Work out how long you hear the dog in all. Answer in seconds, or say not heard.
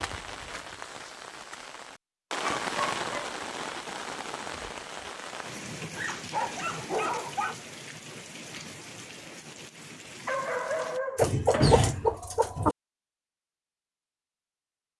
4 s.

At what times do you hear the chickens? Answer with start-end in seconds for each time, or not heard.
11.2-12.8.